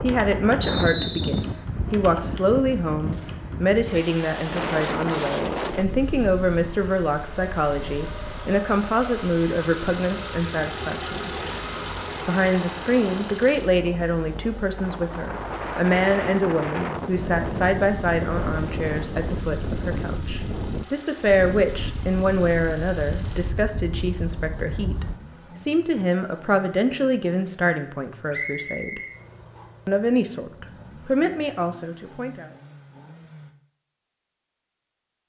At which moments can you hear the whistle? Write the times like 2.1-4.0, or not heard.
0.6-1.4, 28.3-29.6.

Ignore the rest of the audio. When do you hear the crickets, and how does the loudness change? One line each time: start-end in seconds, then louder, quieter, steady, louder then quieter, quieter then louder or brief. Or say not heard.
not heard.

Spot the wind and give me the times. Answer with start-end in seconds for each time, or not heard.
0.0-25.2.